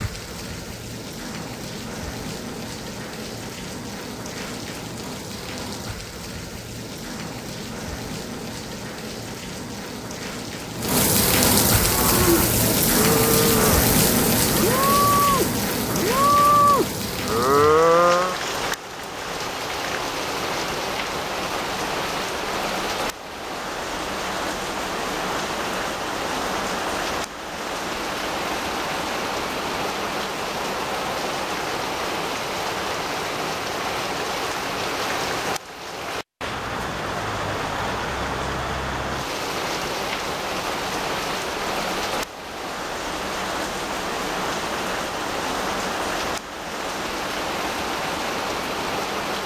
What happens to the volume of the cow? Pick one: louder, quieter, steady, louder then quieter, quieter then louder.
louder.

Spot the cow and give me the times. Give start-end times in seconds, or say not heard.
11.7-18.4.